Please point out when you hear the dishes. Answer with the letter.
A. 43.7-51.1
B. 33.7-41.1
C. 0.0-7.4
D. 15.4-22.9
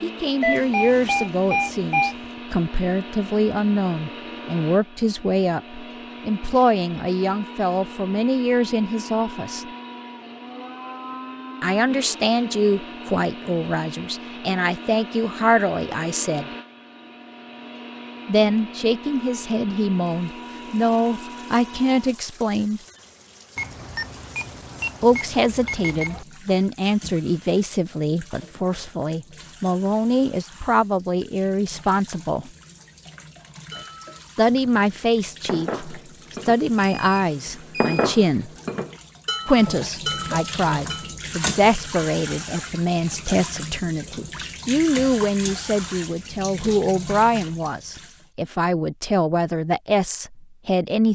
B.